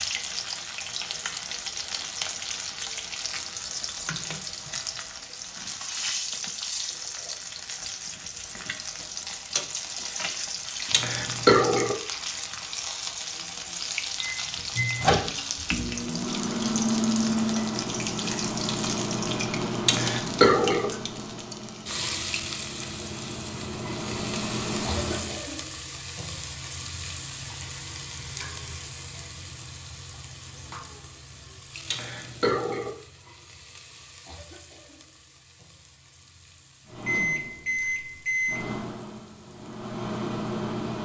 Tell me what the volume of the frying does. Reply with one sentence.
The loudness of the frying goes down.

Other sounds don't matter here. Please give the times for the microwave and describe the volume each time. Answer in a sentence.
You can hear the microwave from 14.2 to 25.4 s, getting quieter then louder; and from 36.9 to 41.0 s, getting quieter then louder.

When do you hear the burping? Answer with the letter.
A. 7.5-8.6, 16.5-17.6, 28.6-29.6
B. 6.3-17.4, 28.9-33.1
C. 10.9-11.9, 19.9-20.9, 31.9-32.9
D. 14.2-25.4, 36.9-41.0
C.